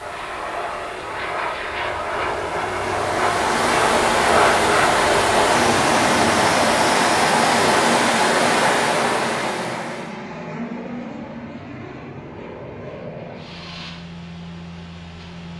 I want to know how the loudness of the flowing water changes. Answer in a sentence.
The loudness of the flowing water goes up.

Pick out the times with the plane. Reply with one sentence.
You can hear the plane from 0.0 to 15.5 s.